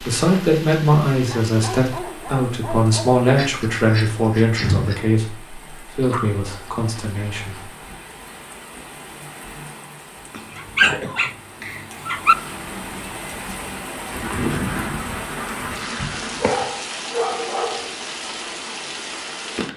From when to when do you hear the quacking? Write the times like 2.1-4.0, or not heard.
3.4-5.0, 14.2-16.5.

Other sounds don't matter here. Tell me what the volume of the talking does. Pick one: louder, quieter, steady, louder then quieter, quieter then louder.
quieter.